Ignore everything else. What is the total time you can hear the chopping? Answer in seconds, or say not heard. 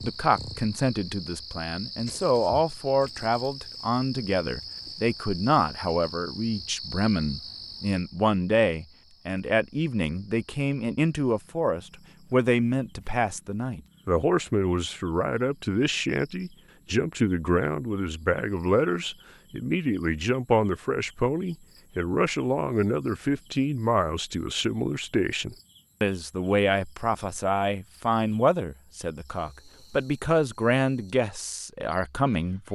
not heard.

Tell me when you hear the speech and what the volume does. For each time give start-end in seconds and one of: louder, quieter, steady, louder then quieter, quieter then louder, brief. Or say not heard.
0.0-32.6 steady.